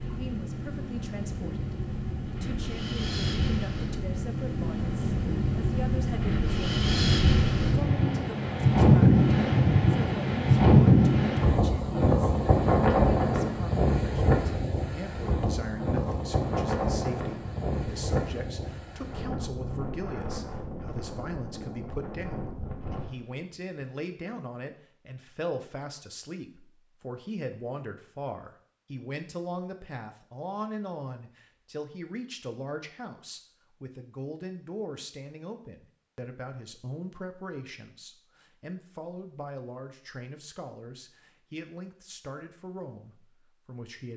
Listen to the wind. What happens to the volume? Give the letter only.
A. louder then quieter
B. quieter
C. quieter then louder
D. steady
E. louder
A.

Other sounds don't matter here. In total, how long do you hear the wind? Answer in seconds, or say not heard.
23 s.